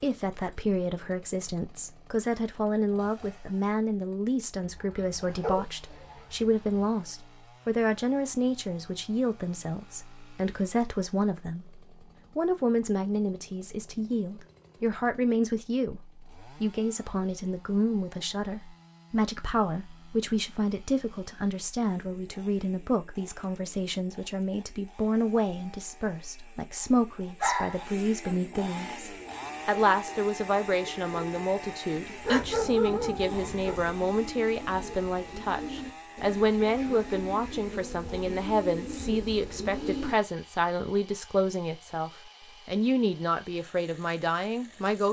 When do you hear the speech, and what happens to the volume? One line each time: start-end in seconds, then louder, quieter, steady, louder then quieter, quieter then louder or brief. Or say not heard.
0.0-45.0 steady.